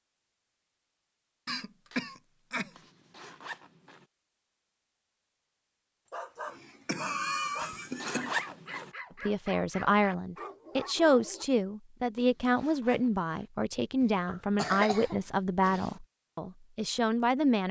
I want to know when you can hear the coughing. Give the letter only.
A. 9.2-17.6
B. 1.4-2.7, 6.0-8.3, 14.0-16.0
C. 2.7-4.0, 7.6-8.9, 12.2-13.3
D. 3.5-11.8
B.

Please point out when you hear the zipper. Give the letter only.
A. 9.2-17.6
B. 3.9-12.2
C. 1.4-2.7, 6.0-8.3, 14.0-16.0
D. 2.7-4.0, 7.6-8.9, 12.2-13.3
D.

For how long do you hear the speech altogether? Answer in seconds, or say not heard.
8 s.